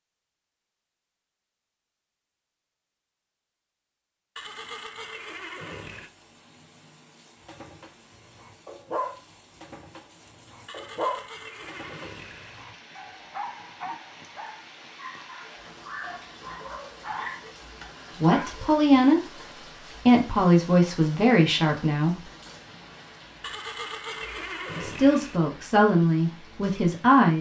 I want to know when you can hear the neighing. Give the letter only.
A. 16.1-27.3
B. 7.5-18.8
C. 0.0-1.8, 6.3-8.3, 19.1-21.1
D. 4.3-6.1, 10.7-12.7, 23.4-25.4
D.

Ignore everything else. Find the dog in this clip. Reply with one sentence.
You can hear the dog from 7.5 to 18.8 s.